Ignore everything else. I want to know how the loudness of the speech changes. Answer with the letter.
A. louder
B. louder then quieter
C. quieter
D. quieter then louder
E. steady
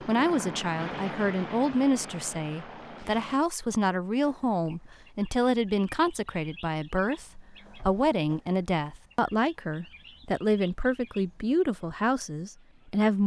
E.